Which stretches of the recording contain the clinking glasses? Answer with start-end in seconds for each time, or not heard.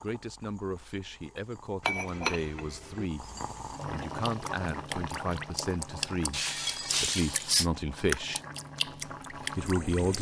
1.8-3.0, 6.3-7.7.